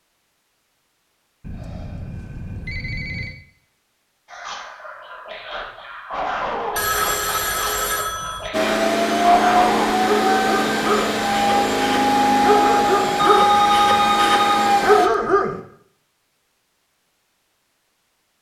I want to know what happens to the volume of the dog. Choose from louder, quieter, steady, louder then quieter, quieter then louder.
louder.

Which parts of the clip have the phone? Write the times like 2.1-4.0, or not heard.
1.4-3.4, 6.8-8.5, 13.2-14.7.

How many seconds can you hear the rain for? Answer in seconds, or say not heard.
not heard.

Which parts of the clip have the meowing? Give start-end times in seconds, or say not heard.
not heard.